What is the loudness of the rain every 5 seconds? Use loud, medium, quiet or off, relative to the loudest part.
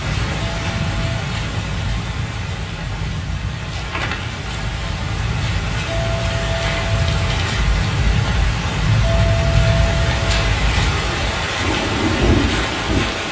medium, loud, loud.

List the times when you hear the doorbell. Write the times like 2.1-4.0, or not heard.
0.3-1.1, 5.8-7.3, 9.0-10.5.